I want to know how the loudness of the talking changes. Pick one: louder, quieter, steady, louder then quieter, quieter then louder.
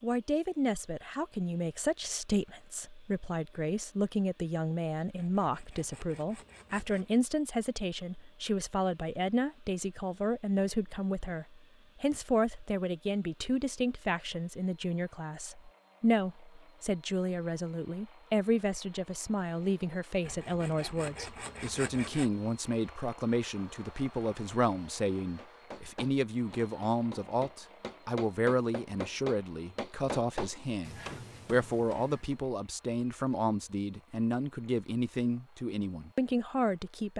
steady.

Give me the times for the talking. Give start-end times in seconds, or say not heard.
0.0-37.1.